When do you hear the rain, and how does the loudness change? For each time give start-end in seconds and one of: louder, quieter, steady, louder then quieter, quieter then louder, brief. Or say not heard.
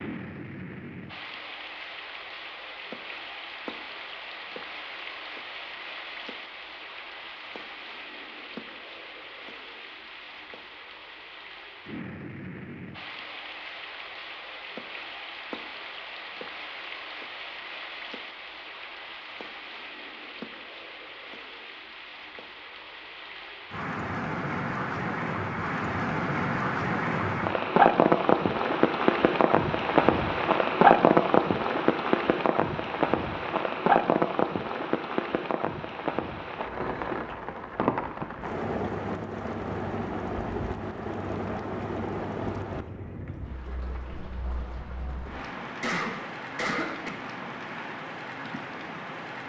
0.0-49.4 louder then quieter.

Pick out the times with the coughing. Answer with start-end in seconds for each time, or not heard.
45.8-47.1.